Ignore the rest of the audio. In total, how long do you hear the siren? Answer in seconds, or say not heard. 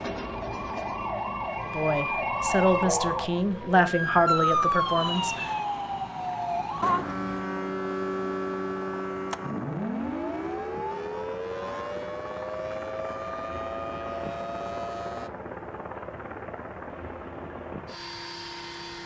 15 s.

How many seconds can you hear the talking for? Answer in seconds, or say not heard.
4 s.